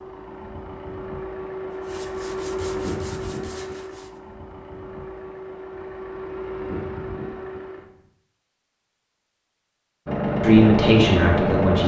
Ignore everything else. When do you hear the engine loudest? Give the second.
11 s.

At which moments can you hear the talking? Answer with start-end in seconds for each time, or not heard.
10.4-11.8.